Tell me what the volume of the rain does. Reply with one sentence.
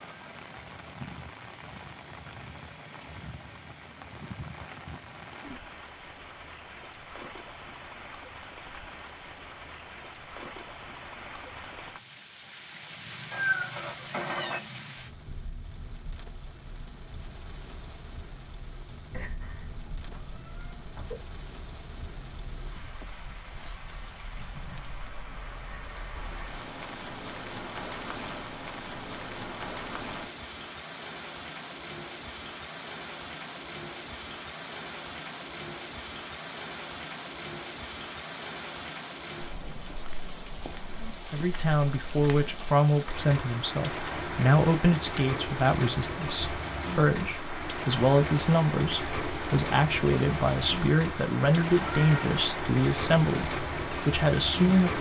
The loudness of the rain goes up.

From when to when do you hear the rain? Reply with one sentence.
The rain can be heard from 0.0 to 54.9 s.